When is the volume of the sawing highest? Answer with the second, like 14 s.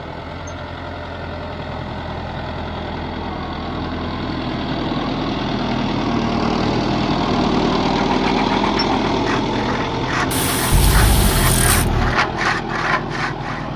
12 s.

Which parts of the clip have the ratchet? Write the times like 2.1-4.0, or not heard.
10.3-11.9.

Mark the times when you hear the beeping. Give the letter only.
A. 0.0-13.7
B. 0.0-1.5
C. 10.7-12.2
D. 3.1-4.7
C.